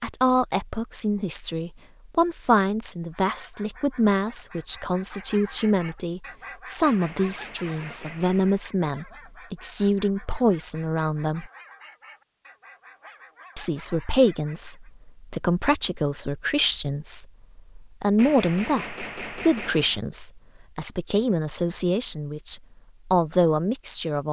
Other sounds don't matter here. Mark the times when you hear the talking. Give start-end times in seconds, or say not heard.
0.0-11.5, 13.6-24.2.